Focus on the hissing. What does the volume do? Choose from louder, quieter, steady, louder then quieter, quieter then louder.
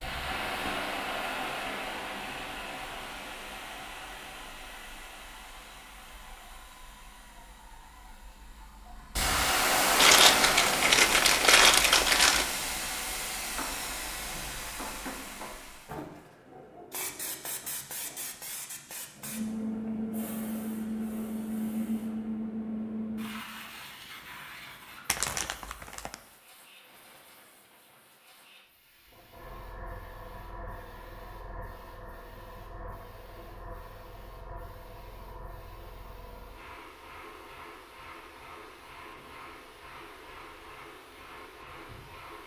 louder then quieter.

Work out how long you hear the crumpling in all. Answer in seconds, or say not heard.
4 s.